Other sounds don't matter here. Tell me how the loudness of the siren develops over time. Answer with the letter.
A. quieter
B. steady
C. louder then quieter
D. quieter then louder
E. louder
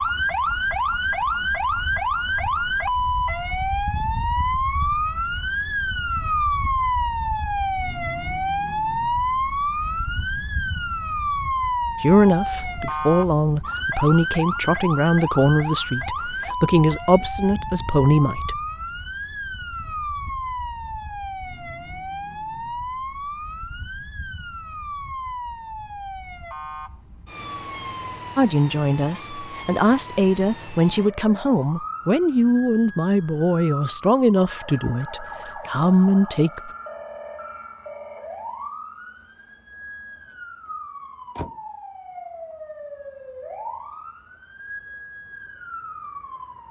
A.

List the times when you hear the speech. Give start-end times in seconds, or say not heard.
12.0-18.6, 28.4-36.7.